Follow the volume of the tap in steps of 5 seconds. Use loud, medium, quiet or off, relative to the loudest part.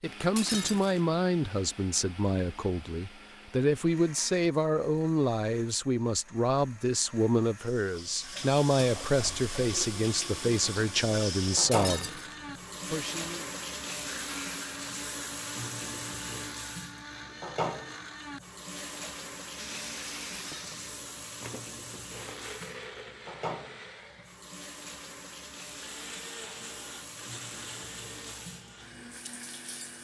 off, loud, loud, loud, medium, medium.